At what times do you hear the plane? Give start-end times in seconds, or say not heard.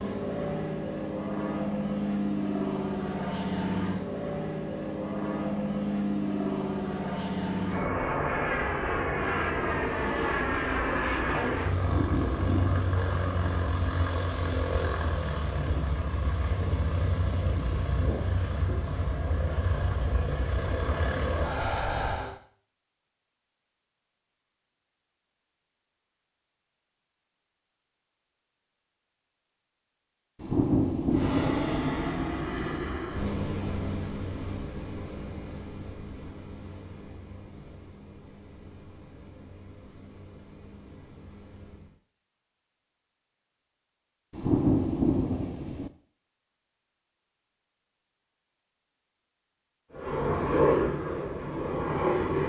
0.0-22.4, 31.1-42.0, 49.9-52.4.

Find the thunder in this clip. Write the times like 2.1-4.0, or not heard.
11.8-13.3, 30.4-31.8, 44.3-45.9.